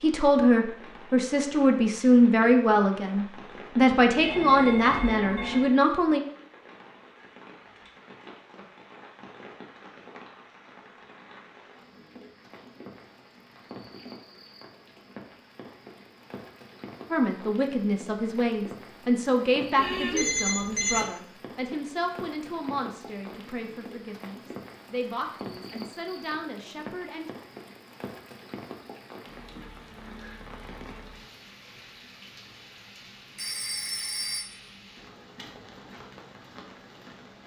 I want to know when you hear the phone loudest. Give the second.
20 s.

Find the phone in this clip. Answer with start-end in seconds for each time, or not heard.
4.2-5.8, 19.8-21.1, 33.4-34.5.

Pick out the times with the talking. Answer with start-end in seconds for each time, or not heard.
0.0-6.2, 17.1-27.3.